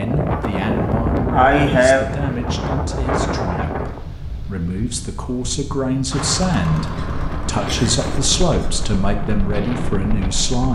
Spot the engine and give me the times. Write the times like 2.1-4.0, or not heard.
6.1-10.7.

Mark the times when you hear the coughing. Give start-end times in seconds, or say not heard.
0.3-2.0, 7.7-8.7.